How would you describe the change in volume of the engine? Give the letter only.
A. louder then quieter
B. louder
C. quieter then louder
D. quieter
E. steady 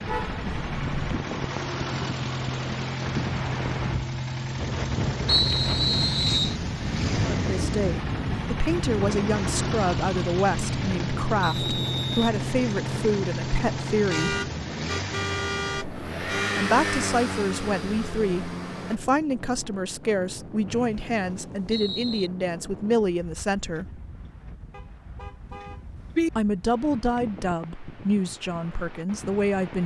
E.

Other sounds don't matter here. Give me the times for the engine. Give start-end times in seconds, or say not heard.
0.0-19.0.